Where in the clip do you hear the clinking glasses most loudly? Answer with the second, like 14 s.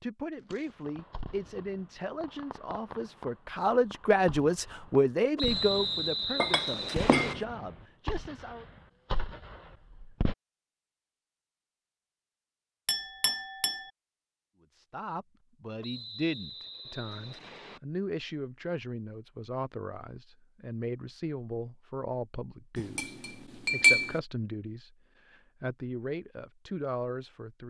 24 s.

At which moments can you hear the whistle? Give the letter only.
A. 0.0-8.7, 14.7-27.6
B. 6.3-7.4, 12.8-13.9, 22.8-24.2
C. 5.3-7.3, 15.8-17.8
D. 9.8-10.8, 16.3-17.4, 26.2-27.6
C.